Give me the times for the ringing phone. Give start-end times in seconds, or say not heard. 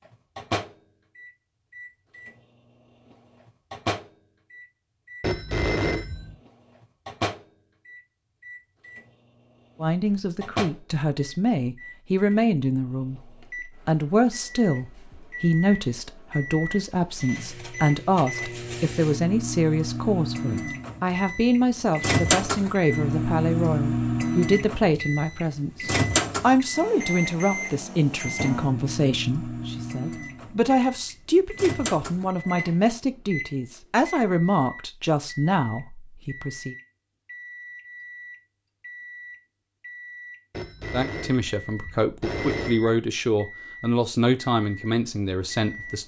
5.2-6.3, 40.5-42.9.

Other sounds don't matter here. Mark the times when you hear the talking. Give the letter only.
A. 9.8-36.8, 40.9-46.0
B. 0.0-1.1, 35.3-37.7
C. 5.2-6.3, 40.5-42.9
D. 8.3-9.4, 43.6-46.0
A.